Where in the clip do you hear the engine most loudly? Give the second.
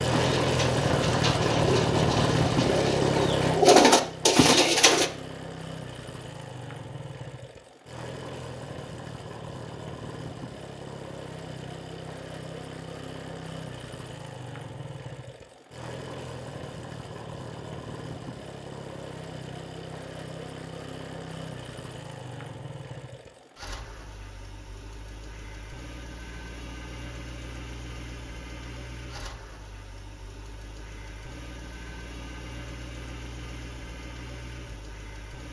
2 s.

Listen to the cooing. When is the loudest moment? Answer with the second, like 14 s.
4 s.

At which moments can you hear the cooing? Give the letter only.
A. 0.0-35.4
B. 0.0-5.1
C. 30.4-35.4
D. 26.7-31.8
B.